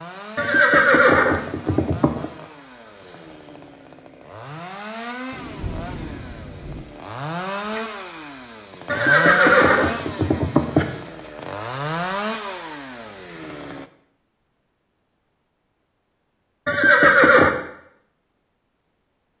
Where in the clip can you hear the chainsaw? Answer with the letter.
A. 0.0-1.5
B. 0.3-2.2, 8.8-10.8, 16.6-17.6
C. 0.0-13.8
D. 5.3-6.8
C.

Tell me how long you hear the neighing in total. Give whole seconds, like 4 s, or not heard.
5 s.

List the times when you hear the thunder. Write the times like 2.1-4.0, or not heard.
5.3-6.8.